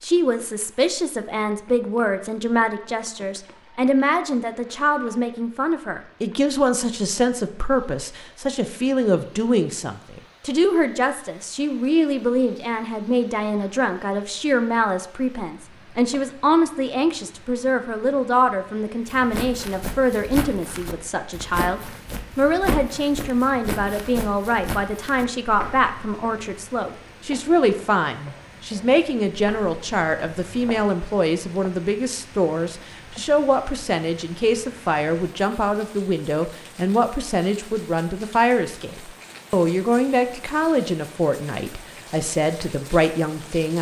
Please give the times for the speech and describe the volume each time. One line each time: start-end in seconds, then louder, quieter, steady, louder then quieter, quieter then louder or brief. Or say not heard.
0.0-43.7 steady.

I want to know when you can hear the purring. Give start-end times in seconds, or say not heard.
not heard.